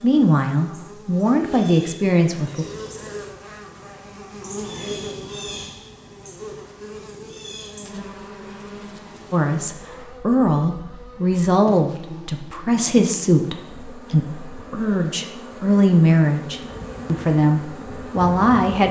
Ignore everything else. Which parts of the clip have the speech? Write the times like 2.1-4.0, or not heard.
0.0-2.6, 9.3-18.8.